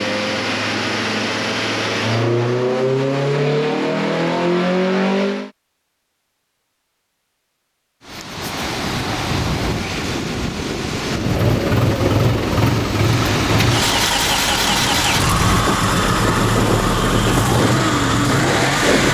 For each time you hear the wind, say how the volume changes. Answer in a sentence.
The wind can be heard from 8.1 to 19.0 s, at a steady volume.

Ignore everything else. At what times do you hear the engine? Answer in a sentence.
The engine can be heard from 0.0 to 5.5 s and from 11.2 to 19.0 s.